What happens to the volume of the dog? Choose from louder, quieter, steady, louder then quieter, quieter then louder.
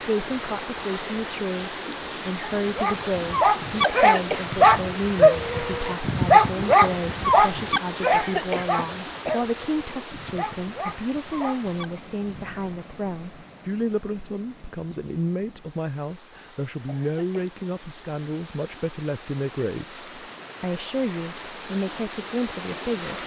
quieter.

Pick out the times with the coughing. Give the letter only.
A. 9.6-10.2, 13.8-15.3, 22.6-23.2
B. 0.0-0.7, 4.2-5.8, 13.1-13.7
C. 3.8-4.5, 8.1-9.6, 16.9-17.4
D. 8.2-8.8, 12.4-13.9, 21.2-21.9
C.